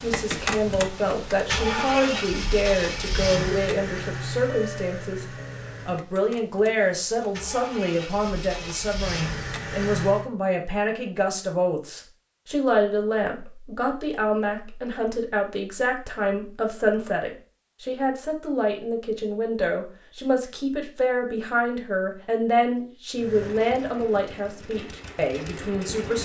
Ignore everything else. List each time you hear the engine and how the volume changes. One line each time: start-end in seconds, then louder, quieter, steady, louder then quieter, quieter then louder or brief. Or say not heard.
0.0-10.3 quieter then louder
23.1-26.1 brief.